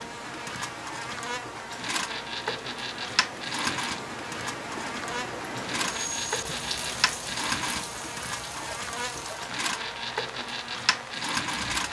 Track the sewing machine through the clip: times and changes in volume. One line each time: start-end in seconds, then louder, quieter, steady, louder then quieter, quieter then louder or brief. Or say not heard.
0.0-11.8 steady.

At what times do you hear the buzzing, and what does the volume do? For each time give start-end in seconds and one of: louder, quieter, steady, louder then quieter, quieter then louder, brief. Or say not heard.
0.0-11.8 steady.